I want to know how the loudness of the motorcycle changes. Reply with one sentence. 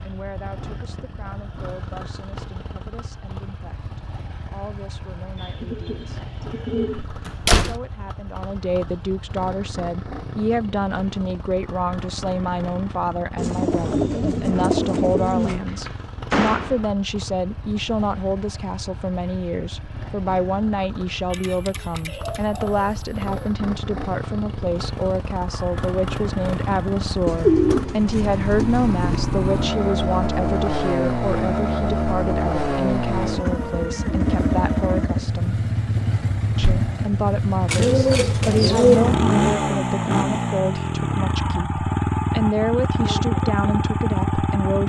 The volume of the motorcycle goes up.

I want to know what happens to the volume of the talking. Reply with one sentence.
The volume of the talking goes up.